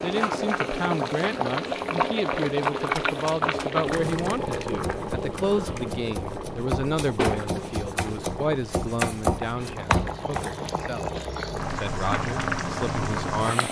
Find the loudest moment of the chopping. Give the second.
9 s.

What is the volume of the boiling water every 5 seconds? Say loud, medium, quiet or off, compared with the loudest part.
loud, medium, loud.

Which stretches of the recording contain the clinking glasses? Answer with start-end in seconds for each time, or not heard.
not heard.